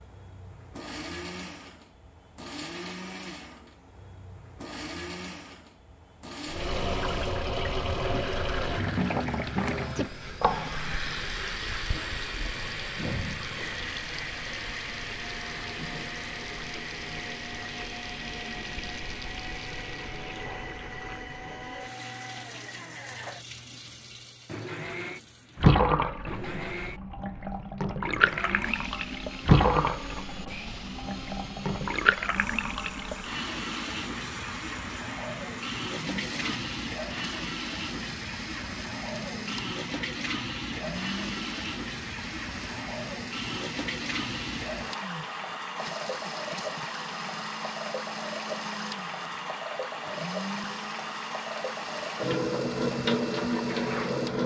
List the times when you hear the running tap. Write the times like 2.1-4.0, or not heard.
6.5-54.4.